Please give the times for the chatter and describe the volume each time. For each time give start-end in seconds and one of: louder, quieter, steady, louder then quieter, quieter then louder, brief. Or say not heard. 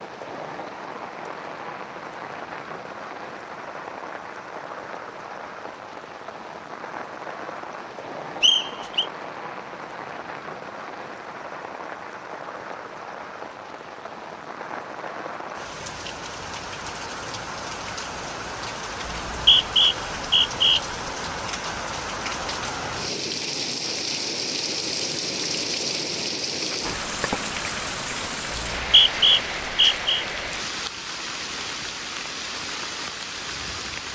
not heard.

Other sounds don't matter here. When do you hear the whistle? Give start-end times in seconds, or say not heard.
8.4-9.1, 19.1-20.8, 28.5-30.2.